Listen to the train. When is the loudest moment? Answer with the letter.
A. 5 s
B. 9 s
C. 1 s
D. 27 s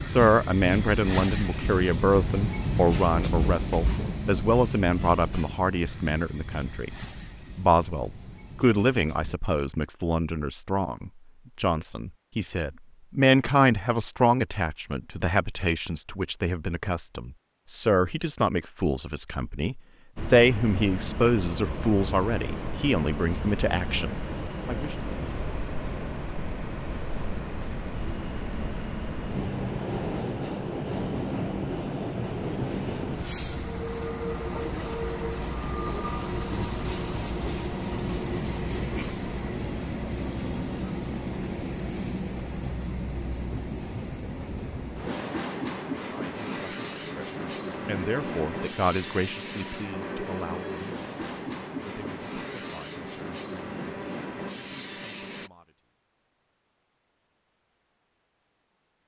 C.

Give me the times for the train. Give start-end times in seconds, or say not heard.
0.0-9.3, 20.1-55.5.